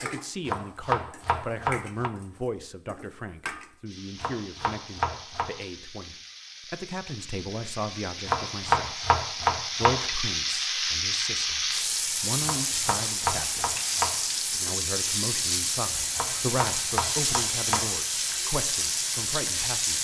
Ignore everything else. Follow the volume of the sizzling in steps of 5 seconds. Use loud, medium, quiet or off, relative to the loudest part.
quiet, medium, loud, loud.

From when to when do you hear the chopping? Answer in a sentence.
The chopping can be heard from 0.5 to 2.1 s, from 4.2 to 5.5 s, from 8.2 to 10.1 s, from 12.4 to 14.2 s and from 16.1 to 17.9 s.